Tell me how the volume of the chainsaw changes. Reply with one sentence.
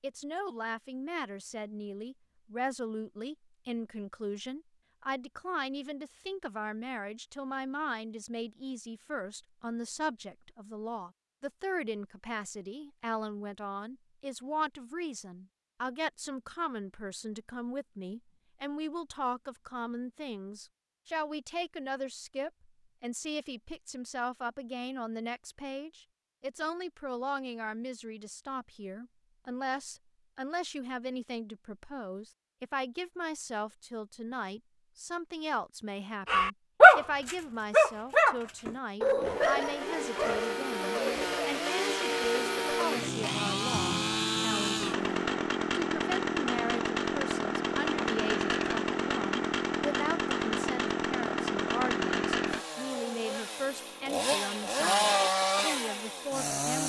The loudness of the chainsaw stays about the same.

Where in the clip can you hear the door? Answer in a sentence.
You can't hear the door here.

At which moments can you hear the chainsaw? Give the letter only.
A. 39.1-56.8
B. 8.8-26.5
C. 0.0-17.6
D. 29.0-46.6
A.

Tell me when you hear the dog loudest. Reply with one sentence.
The volume of the dog peaks at 37 seconds.